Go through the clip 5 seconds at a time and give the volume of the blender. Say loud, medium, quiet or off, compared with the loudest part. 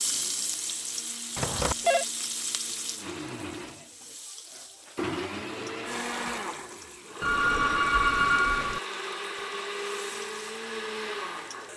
medium, loud, loud.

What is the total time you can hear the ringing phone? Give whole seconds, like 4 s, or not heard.
2 s.